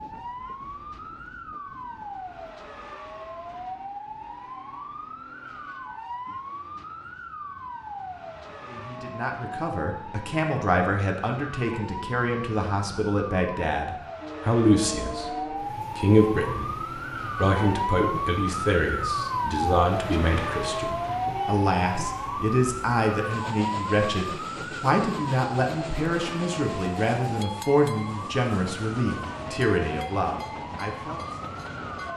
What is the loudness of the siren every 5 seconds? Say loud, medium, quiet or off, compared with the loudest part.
medium, medium, medium, loud, loud, medium, medium.